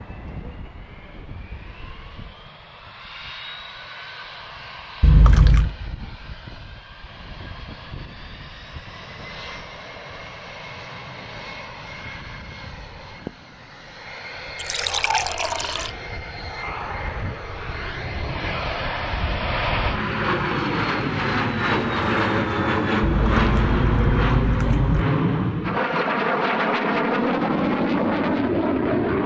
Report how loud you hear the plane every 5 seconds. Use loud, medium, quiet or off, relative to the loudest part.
quiet, quiet, quiet, medium, loud, loud.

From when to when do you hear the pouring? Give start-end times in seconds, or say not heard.
5.0-5.8, 14.6-15.9, 23.0-25.1.